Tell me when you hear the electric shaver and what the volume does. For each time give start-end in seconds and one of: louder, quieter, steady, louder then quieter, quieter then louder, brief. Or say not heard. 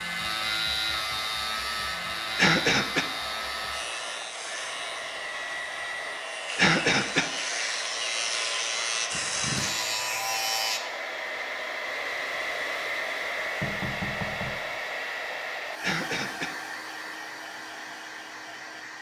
0.0-10.8 quieter then louder.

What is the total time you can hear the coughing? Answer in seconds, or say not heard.
2 s.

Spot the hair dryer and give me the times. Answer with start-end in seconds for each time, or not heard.
0.0-18.9.